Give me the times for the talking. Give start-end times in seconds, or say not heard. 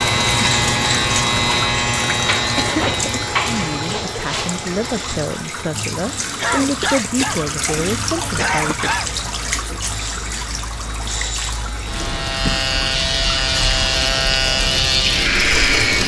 3.5-8.9.